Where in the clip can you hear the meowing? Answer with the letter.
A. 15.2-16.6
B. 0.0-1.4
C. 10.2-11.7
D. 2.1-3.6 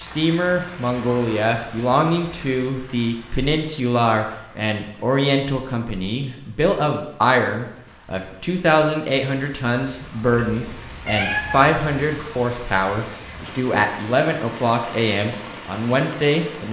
C.